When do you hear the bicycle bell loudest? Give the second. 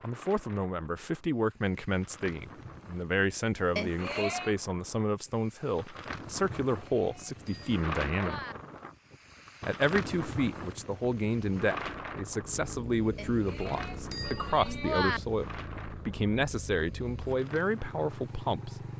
15 s.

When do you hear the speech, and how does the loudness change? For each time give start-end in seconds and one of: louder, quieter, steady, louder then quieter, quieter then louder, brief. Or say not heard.
0.0-8.4 steady
9.6-18.9 steady.